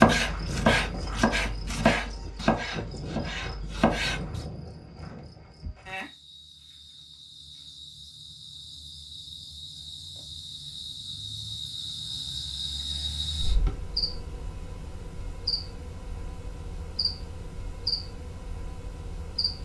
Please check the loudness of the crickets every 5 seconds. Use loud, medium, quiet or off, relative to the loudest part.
loud, medium, loud, loud.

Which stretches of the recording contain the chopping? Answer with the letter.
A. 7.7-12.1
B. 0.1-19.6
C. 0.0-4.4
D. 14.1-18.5
C.